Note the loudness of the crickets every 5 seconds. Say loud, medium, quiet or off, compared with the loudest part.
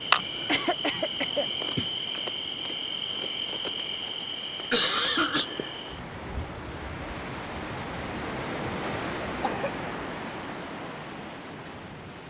loud, medium, off.